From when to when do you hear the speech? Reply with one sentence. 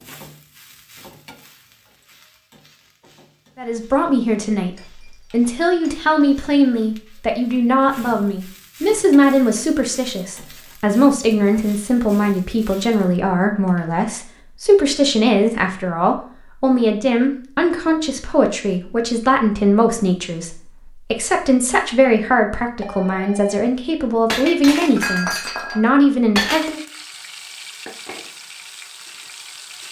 The speech can be heard from 3.5 to 4.7 s and from 5.3 to 26.8 s.